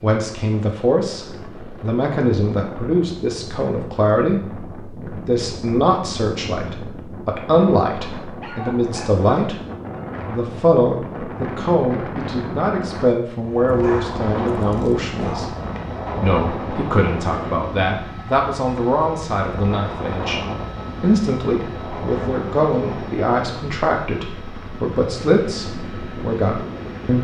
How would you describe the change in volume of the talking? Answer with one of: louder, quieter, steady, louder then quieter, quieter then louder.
steady.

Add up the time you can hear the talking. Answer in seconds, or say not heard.
25 s.